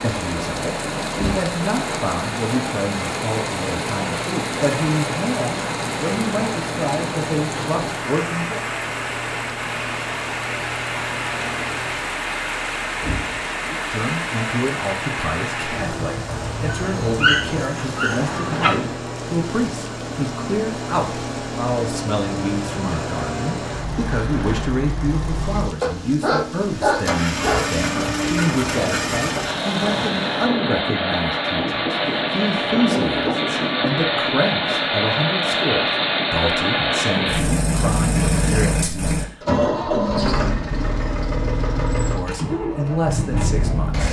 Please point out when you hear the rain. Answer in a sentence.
The rain can be heard from 0.0 to 30.6 s.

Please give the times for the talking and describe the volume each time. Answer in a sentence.
The talking can be heard from 0.0 to 8.6 s, at a steady volume; from 13.6 to 39.4 s, at a steady volume; and briefly from 42.0 to 44.0 s.